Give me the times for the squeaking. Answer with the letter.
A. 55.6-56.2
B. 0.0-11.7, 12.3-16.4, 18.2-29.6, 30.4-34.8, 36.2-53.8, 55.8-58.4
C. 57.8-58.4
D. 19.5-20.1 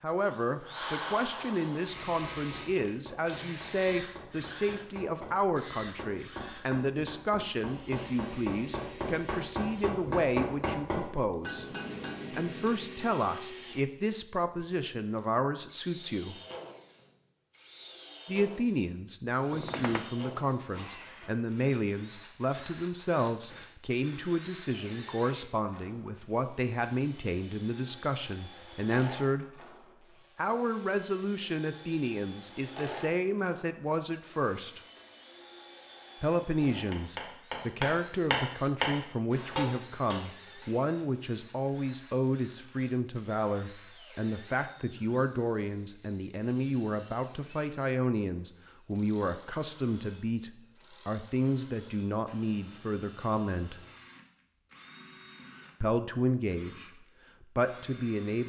D.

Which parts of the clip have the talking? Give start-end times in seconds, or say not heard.
0.0-11.7, 12.3-16.4, 18.2-29.6, 30.4-34.8, 36.2-53.8, 55.8-58.4.